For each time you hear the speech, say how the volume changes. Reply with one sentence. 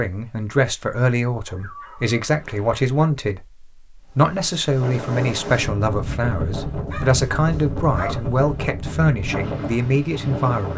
The speech can be heard from 0.0 to 10.7 s, at a steady volume.